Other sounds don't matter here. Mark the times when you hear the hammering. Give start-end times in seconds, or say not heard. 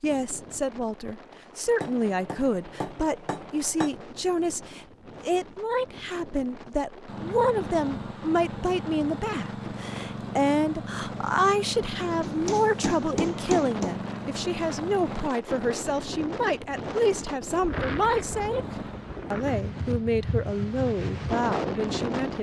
1.8-3.9, 12.2-13.9.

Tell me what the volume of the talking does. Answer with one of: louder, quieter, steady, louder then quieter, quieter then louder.
steady.